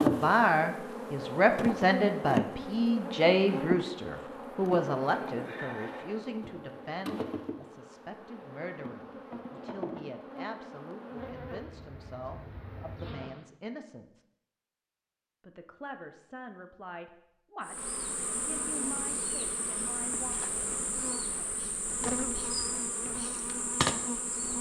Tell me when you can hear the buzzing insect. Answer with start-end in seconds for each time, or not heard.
0.0-13.4, 17.6-24.5.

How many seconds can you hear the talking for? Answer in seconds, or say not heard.
19 s.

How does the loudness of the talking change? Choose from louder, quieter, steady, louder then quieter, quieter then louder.
quieter.